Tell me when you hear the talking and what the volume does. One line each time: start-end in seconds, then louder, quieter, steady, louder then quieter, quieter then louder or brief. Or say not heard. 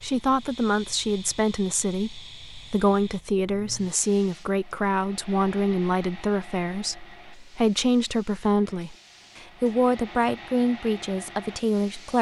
0.0-12.1 steady.